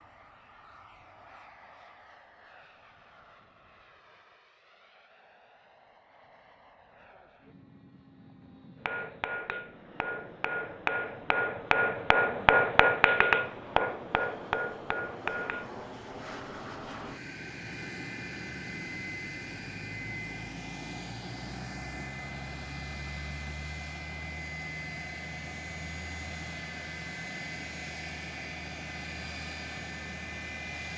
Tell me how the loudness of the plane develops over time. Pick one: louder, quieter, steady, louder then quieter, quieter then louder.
louder.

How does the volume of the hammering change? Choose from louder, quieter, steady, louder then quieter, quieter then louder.
louder then quieter.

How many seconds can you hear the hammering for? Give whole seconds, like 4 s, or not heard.
7 s.